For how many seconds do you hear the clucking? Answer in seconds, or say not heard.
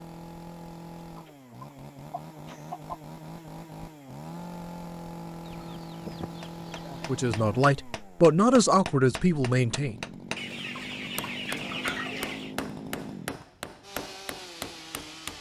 6 s.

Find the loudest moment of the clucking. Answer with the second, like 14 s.
12 s.